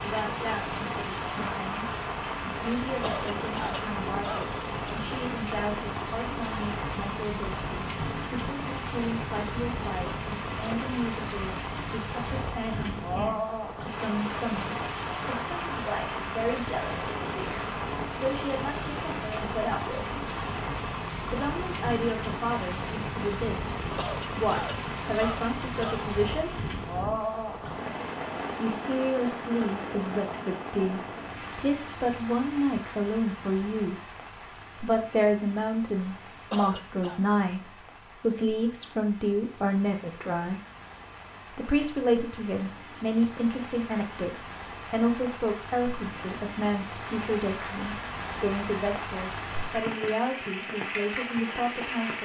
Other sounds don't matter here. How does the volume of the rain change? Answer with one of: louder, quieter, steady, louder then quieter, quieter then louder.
quieter then louder.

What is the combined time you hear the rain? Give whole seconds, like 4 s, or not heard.
52 s.